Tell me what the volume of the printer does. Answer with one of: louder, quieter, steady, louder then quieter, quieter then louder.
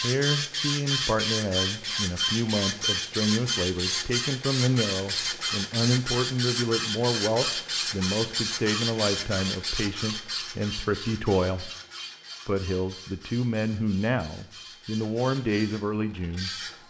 quieter.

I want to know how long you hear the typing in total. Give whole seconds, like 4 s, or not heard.
not heard.